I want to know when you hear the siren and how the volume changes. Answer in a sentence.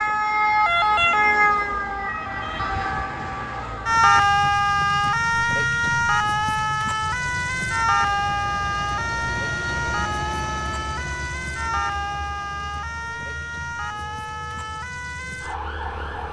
The siren can be heard from 0.0 to 16.2 s, getting quieter.